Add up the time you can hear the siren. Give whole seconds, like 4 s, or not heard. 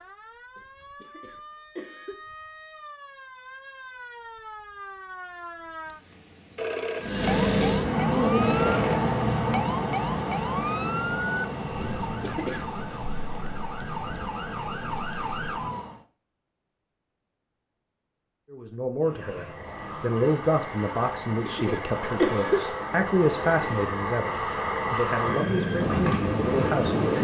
16 s.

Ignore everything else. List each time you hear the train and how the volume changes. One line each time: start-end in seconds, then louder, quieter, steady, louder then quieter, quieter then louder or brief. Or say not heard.
7.0-16.1 quieter
19.0-27.1 louder.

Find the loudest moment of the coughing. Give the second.
22 s.